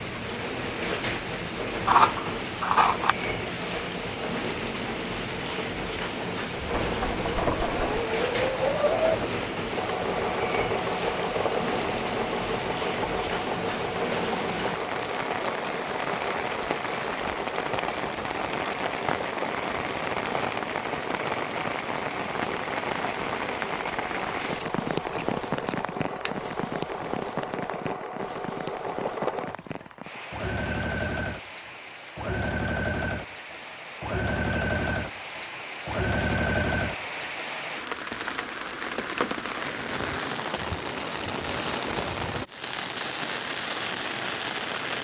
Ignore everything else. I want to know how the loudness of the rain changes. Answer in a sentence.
The volume of the rain goes down, then up.